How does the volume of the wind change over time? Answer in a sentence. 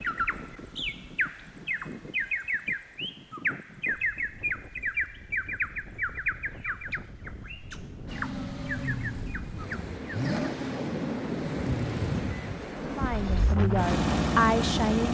The volume of the wind goes up.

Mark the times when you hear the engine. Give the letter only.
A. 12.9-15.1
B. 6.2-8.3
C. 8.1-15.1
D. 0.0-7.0
C.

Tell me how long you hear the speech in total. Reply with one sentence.
The speech can be heard for 2 seconds in total.